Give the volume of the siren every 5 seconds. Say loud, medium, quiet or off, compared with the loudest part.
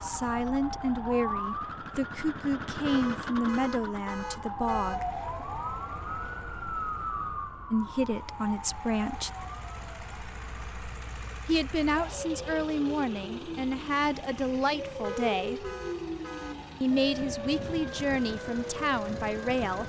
loud, loud, medium, loud.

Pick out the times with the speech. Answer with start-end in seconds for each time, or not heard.
0.0-5.2, 7.7-9.3, 11.4-15.7, 16.8-19.8.